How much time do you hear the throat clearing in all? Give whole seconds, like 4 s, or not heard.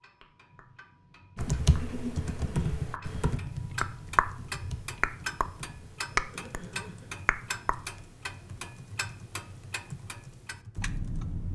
2 s.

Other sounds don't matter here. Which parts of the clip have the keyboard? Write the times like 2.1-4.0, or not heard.
1.4-11.2.